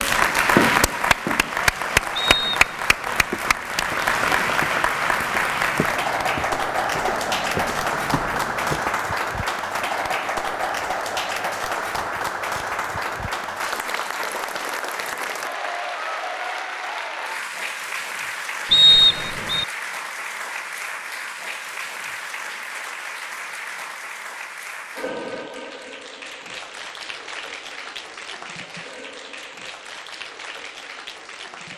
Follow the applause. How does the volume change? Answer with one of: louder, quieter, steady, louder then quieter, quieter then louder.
quieter.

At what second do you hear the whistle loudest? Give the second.
19 s.